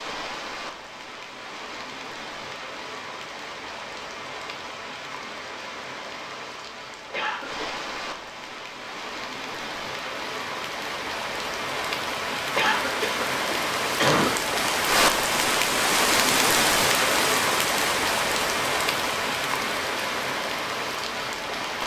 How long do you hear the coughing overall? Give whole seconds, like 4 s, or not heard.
2 s.